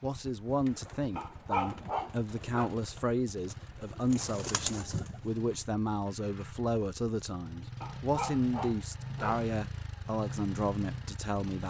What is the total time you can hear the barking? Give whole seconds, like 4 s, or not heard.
3 s.